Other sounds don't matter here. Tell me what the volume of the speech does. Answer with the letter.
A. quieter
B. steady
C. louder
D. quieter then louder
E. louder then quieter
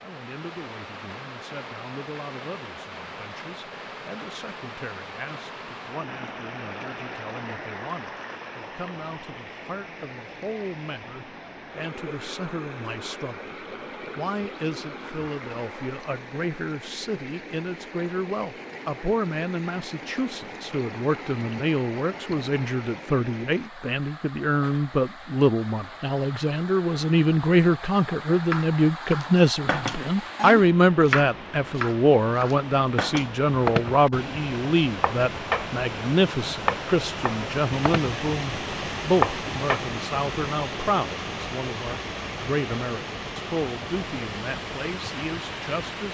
E.